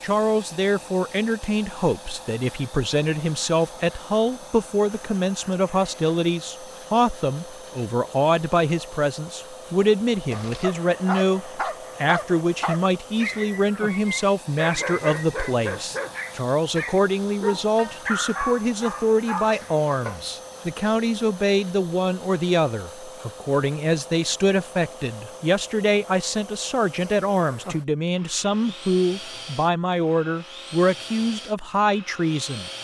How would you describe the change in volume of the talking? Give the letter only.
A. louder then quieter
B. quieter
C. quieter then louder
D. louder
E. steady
E.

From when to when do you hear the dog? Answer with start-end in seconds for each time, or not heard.
10.3-20.2.